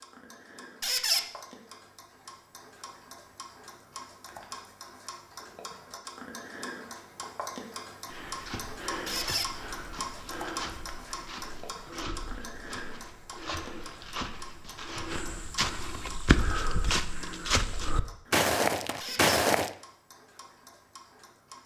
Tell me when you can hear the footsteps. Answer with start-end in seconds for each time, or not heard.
8.1-19.7.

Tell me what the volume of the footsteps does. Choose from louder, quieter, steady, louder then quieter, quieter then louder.
louder.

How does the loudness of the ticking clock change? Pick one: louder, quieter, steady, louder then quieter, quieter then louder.
louder then quieter.